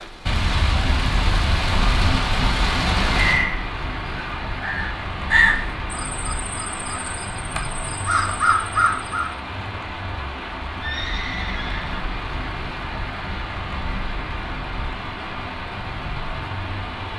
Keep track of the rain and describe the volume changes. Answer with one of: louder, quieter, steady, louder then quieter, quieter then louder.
quieter.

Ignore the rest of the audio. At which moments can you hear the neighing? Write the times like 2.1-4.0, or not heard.
10.8-12.0.